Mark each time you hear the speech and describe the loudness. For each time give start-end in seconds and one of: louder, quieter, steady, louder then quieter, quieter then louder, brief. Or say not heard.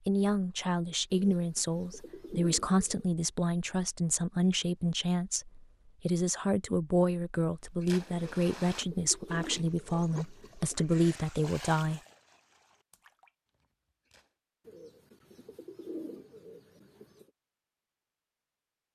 0.1-12.0 steady.